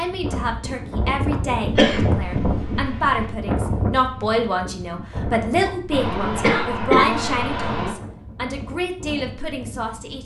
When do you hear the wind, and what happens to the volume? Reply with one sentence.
You can hear the wind from 0.0 to 10.2 s, getting quieter.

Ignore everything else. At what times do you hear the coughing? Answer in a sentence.
The coughing can be heard from 1.8 to 3.2 s and from 5.9 to 8.0 s.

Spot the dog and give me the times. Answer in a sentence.
The dog can't be heard in this clip.